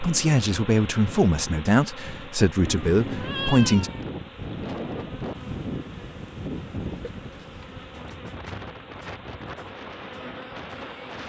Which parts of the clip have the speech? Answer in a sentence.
You can hear the speech from 0.0 to 3.9 s.